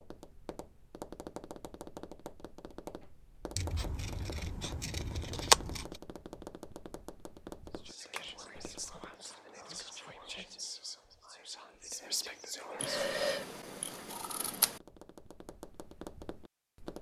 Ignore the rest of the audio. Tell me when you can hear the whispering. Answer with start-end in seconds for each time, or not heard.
7.7-13.1.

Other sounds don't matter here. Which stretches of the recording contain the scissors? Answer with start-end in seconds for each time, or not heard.
3.5-6.0, 12.8-14.8.